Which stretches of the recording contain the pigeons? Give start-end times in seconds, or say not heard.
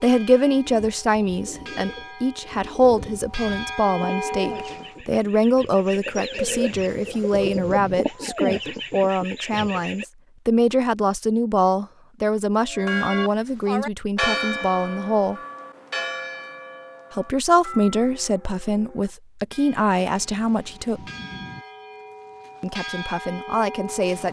0.6-10.1.